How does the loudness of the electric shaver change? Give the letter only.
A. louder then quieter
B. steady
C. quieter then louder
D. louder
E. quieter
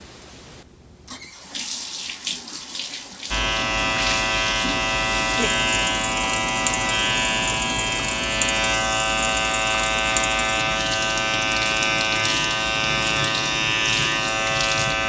B.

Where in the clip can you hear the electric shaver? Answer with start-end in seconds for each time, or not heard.
3.3-15.0.